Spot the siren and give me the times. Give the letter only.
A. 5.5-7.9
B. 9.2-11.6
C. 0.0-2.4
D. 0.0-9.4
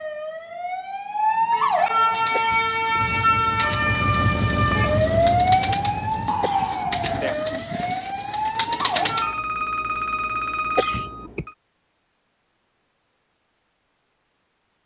D.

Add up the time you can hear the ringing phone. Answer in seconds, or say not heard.
2 s.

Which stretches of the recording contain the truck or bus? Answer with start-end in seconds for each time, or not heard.
3.0-6.3.